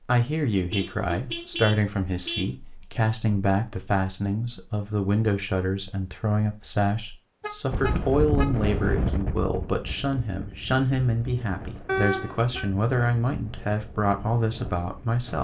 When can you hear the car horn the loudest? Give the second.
12 s.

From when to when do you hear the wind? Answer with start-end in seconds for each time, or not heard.
7.7-15.3.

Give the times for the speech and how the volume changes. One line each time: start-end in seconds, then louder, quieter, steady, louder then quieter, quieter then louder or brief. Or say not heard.
0.1-15.3 steady.